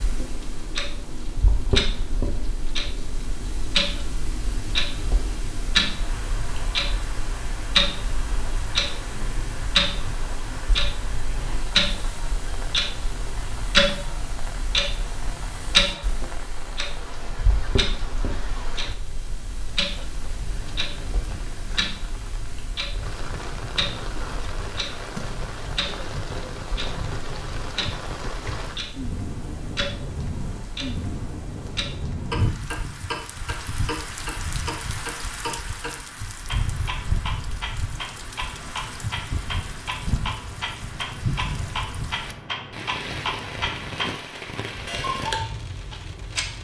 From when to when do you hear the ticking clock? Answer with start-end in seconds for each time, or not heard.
0.0-46.5.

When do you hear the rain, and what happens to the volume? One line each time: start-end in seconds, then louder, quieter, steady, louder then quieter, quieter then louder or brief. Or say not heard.
0.0-46.5 louder.